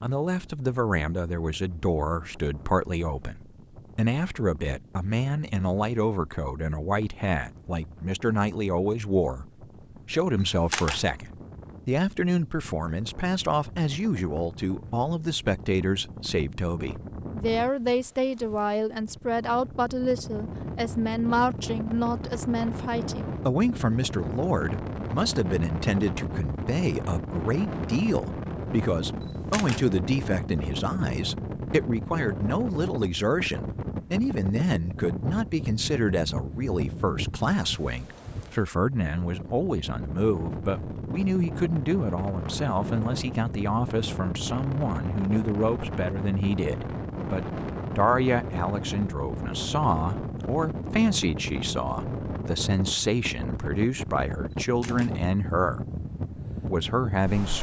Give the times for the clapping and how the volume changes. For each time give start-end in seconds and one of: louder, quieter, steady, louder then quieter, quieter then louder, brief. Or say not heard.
not heard.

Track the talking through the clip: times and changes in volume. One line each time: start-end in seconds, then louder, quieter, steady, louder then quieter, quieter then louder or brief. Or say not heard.
0.0-55.9 steady
56.6-57.5 brief.